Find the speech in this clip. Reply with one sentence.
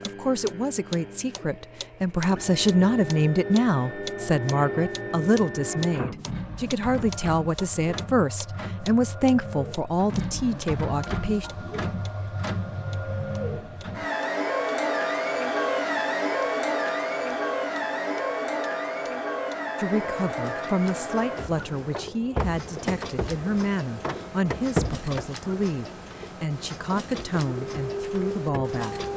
You can hear the speech from 0.0 to 11.5 s and from 19.8 to 29.1 s.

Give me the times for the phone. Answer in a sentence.
The phone can't be heard in this clip.